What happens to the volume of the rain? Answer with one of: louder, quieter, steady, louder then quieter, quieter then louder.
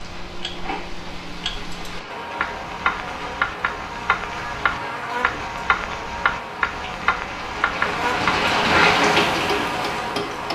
louder.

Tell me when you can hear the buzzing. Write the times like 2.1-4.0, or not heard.
2.0-10.5.